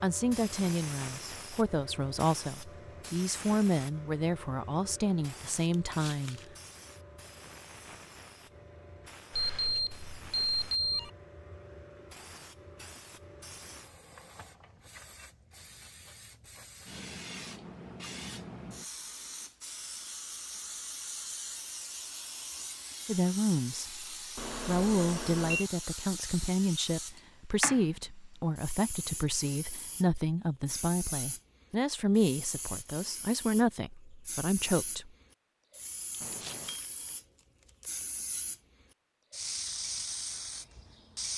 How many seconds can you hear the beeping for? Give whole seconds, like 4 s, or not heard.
4 s.